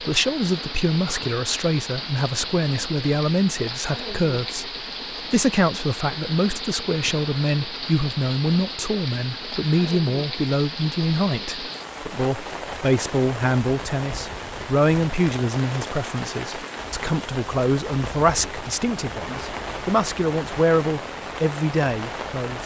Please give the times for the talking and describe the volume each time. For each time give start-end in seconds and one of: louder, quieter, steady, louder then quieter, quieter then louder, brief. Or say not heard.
0.0-22.6 steady.